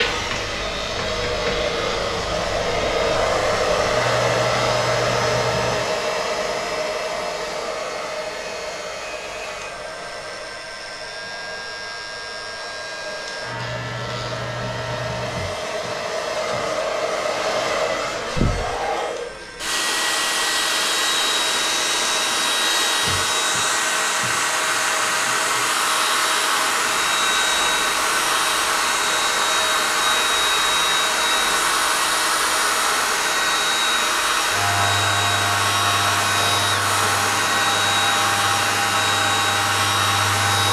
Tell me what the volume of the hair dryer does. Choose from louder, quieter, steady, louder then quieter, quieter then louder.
quieter then louder.